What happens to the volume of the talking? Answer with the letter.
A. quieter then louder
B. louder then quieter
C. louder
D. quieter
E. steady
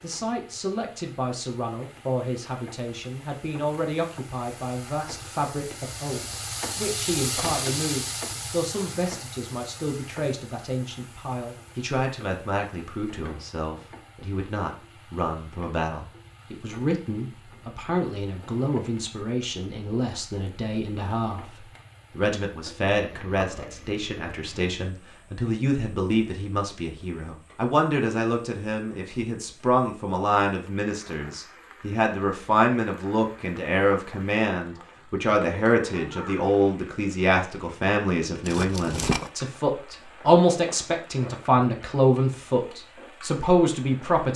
C.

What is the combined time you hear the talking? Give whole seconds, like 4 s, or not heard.
44 s.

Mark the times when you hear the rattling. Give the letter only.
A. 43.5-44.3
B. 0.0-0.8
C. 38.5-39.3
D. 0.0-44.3
C.